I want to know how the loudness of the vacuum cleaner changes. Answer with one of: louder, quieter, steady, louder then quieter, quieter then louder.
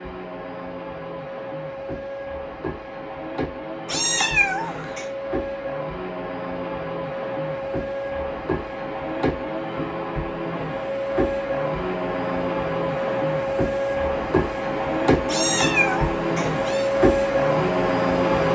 louder.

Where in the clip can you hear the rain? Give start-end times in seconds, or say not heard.
not heard.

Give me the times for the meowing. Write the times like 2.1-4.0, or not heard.
3.9-5.0, 15.2-16.9.